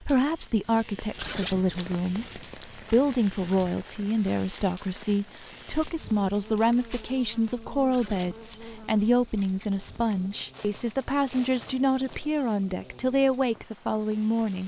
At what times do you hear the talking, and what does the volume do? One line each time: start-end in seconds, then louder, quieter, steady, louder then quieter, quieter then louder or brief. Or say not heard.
0.0-14.6 steady.